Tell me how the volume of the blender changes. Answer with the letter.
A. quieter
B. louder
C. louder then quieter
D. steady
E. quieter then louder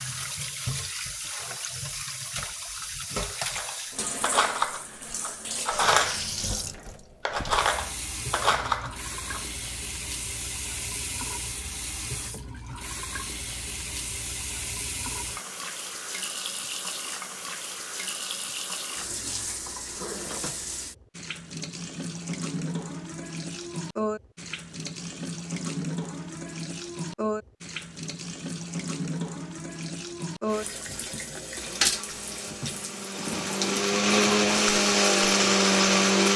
B.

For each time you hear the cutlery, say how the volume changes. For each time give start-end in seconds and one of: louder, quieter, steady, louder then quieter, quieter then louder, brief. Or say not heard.
3.5-9.4 steady.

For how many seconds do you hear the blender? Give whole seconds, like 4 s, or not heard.
6 s.